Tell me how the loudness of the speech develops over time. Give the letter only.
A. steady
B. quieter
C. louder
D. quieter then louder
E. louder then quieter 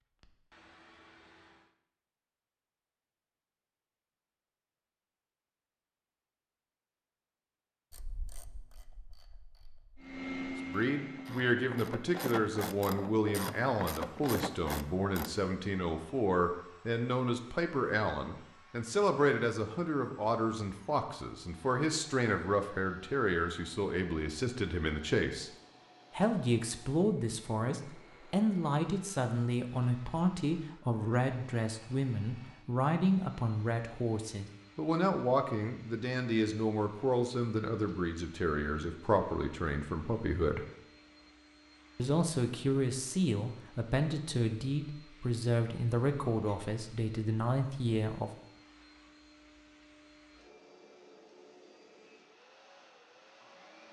A.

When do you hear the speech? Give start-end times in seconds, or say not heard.
10.7-25.5, 26.1-40.6, 42.0-48.3.